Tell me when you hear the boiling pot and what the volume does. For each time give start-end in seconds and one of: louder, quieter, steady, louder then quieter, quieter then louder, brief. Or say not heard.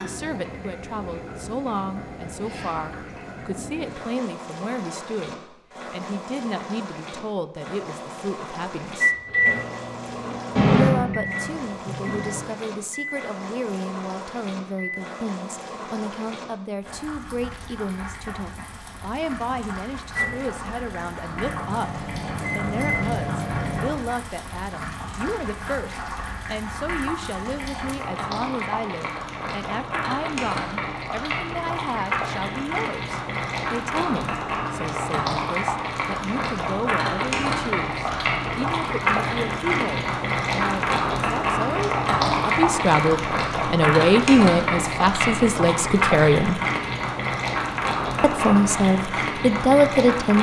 0.0-50.3 louder.